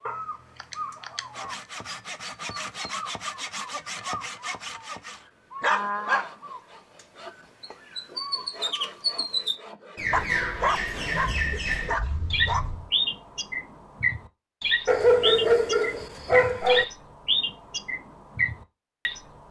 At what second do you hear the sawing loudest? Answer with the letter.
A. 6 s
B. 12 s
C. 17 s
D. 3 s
A.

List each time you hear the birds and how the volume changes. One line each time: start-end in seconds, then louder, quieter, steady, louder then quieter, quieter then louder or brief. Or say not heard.
0.0-19.4 louder.